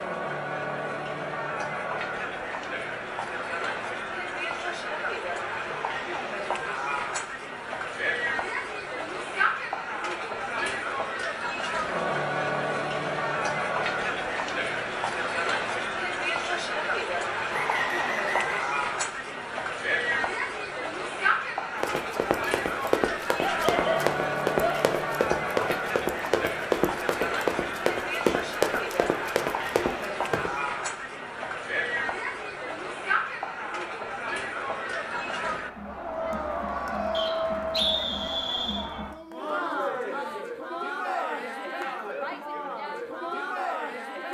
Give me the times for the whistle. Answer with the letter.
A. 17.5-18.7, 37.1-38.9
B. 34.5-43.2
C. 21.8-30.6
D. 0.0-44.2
A.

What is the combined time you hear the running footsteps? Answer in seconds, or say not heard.
9 s.